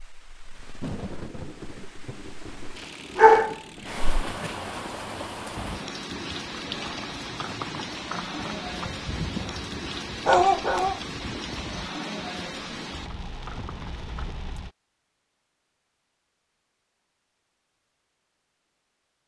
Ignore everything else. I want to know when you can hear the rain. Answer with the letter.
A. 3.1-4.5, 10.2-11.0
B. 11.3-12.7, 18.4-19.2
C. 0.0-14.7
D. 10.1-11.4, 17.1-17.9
C.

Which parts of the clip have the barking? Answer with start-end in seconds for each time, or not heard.
3.1-4.5, 10.2-11.0.